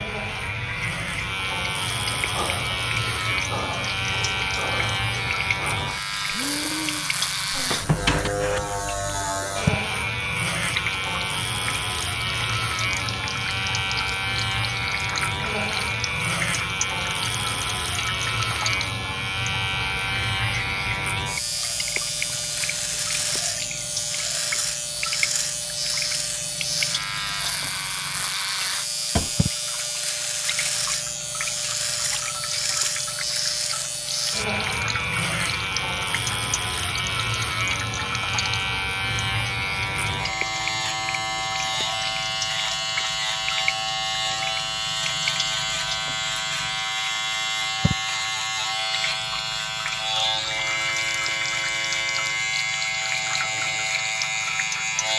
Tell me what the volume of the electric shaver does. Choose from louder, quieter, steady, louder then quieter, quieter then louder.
steady.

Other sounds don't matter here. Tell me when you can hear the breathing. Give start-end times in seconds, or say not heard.
2.2-8.8.